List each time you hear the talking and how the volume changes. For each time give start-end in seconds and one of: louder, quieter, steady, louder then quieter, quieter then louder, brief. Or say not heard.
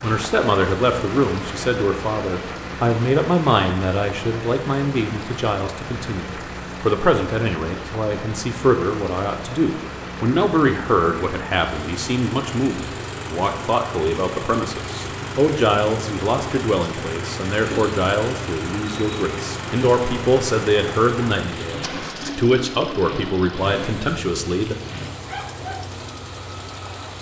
0.0-24.8 steady.